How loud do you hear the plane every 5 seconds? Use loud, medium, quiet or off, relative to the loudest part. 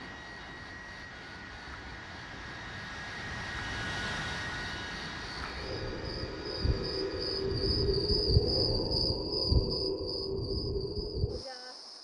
loud, medium, off.